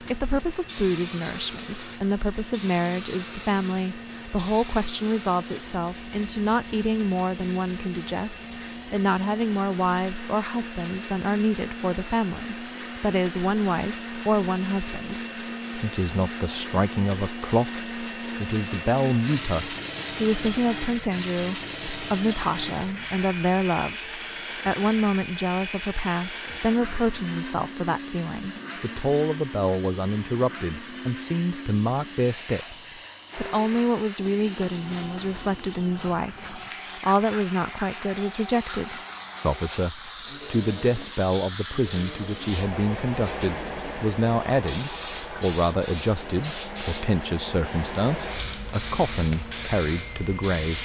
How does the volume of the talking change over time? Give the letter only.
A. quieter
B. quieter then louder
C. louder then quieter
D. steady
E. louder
D.